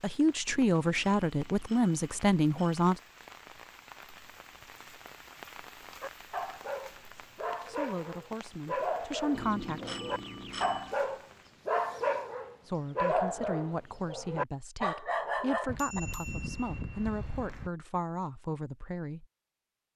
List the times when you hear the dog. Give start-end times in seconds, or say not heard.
6.0-16.0.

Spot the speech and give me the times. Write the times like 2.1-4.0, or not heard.
0.0-3.0, 7.2-9.8, 12.7-19.2.